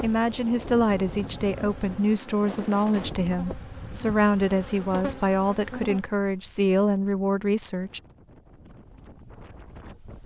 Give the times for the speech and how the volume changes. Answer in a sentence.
You can hear the speech from 0.0 to 8.0 s, at a steady volume.